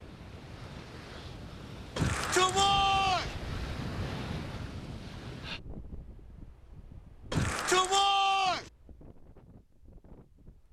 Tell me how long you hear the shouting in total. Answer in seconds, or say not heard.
3 s.